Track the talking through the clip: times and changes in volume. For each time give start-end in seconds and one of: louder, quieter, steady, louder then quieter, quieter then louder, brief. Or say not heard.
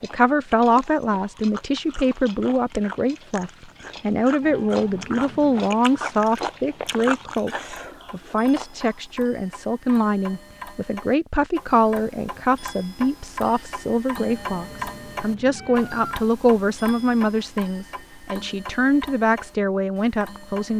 0.0-20.7 steady.